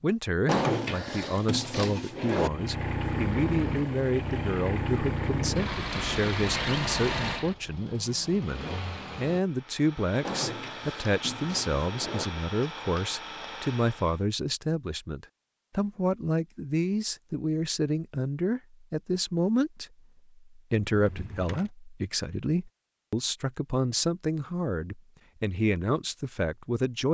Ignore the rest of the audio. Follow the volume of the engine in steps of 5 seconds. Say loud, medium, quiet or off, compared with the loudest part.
loud, loud, medium, off, off, off.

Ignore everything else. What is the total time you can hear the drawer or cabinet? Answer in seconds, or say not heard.
5 s.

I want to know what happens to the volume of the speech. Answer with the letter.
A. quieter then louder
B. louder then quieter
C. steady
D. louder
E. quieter
C.